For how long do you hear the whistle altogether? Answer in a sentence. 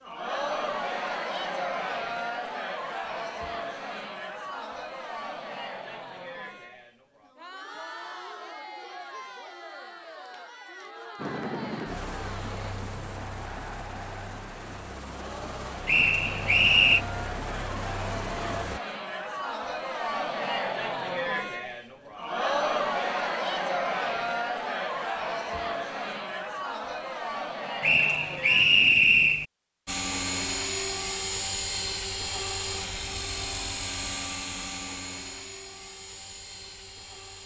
The whistle can be heard for 3 seconds in total.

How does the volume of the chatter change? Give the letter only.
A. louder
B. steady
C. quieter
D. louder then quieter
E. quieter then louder
E.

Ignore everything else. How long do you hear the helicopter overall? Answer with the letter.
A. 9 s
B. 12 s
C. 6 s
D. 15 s
D.